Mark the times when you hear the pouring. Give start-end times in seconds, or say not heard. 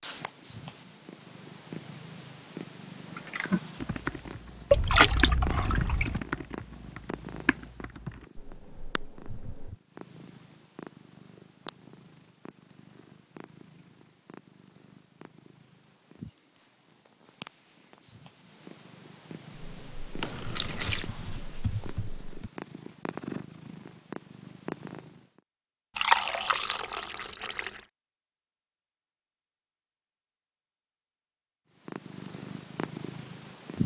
4.7-6.2, 20.2-21.1, 25.9-27.8.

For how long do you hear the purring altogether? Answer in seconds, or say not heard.
27 s.